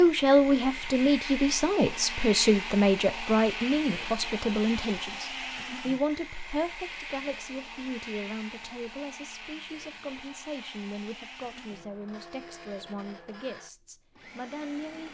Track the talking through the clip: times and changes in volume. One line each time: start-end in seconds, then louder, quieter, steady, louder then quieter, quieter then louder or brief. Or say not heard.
0.0-15.0 quieter.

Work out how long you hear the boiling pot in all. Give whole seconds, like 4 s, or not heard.
not heard.